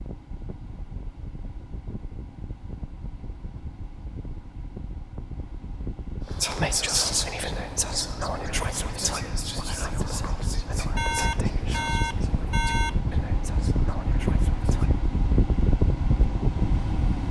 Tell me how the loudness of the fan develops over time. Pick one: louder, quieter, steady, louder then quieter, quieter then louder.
louder.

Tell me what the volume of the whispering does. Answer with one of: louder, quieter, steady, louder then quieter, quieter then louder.
quieter.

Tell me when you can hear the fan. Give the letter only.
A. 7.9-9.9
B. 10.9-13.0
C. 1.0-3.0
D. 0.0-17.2
D.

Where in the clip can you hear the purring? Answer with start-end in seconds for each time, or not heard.
not heard.